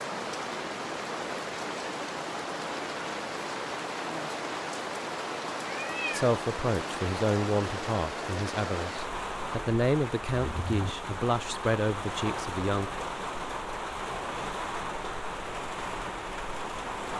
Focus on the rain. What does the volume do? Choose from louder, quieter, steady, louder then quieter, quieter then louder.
steady.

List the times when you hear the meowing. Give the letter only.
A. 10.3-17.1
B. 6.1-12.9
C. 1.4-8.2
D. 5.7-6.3
D.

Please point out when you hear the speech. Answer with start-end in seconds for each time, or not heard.
6.1-12.9.